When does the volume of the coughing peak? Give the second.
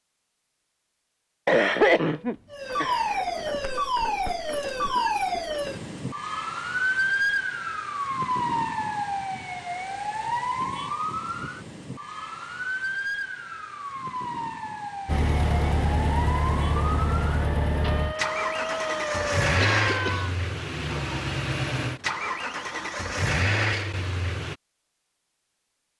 2 s.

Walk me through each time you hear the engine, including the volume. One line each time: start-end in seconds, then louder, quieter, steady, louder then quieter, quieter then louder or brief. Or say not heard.
15.1-24.6 steady.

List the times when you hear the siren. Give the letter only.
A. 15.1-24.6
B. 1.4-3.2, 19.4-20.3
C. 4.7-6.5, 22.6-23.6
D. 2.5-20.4
D.